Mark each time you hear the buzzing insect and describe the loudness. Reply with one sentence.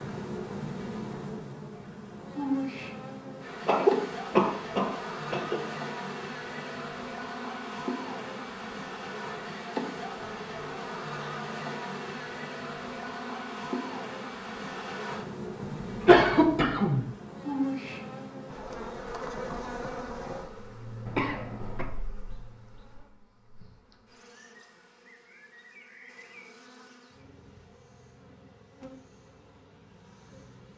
The buzzing insect can be heard from 0.0 to 30.7 s, getting quieter.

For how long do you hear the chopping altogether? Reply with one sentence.
The chopping can't be heard in this clip.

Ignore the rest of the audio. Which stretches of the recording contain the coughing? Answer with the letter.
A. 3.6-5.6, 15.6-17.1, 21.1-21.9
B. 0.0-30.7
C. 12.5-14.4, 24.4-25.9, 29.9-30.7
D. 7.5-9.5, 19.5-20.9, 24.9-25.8
A.